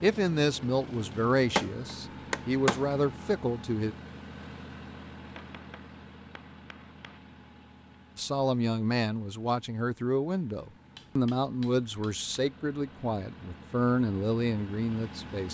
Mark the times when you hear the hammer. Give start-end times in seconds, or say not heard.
1.6-2.9, 5.2-7.2, 10.9-12.2.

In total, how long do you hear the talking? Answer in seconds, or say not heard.
11 s.